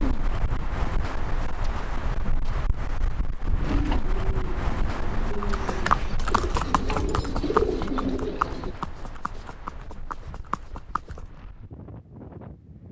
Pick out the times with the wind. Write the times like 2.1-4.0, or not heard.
0.0-12.8.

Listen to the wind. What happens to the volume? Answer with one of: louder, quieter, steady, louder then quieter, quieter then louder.
quieter.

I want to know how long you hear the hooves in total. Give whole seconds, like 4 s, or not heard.
6 s.